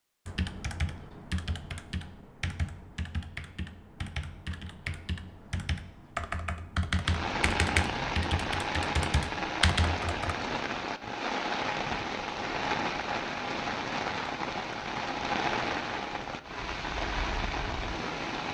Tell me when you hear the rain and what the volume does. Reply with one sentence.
The rain can be heard from 7.0 to 18.4 s, at a steady volume.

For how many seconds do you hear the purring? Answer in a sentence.
The purring can't be heard in this clip.